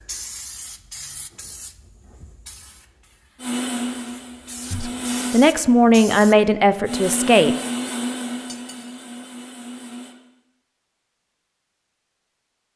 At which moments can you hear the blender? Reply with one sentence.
You can hear the blender from 3.4 to 5.3 s and from 6.8 to 10.2 s.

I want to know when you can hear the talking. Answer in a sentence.
The talking can be heard from 4.7 to 7.5 s.